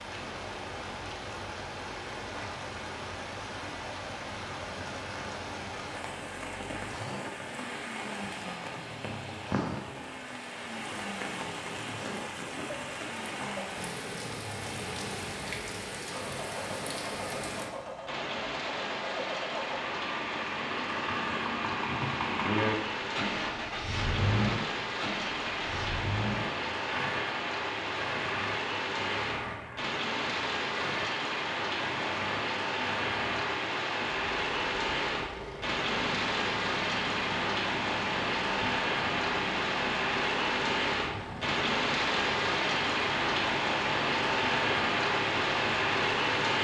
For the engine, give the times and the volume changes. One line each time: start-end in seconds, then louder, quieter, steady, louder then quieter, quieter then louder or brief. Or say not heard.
0.0-46.5 louder then quieter.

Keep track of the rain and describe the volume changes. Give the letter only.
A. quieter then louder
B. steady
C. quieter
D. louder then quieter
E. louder
E.